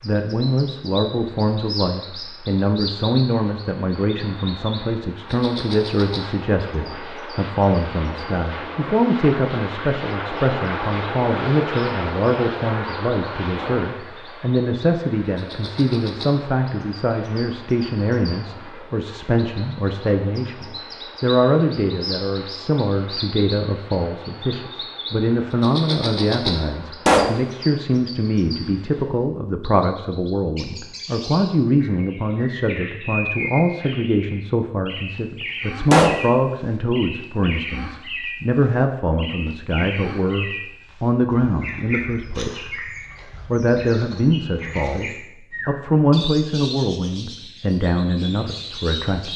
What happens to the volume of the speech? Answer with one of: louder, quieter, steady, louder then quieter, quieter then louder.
steady.